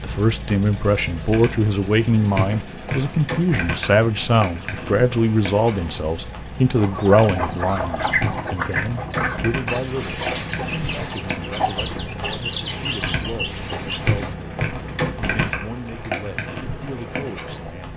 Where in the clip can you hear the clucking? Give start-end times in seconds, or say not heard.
6.8-14.3.